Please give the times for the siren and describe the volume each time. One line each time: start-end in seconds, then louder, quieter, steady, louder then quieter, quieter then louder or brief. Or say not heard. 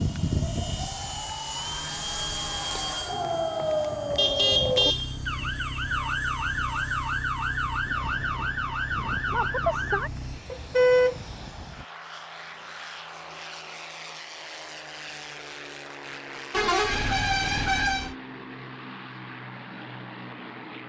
0.0-10.4 louder.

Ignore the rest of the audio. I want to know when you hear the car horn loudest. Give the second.
11 s.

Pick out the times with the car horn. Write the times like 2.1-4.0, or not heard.
4.2-5.2, 10.5-11.2, 16.5-18.1.